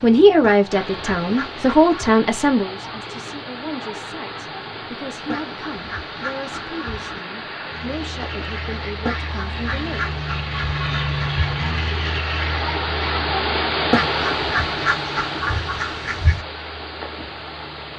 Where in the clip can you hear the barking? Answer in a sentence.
The barking can't be heard in this clip.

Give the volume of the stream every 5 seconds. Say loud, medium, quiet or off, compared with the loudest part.
medium, medium, loud, medium.